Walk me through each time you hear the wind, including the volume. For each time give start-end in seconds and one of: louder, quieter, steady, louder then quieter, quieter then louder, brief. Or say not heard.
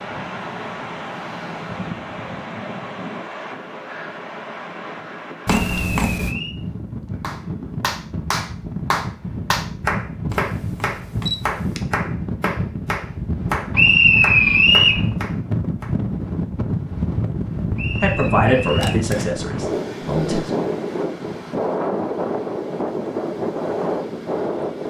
0.0-24.8 louder.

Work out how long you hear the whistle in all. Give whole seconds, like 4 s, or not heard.
4 s.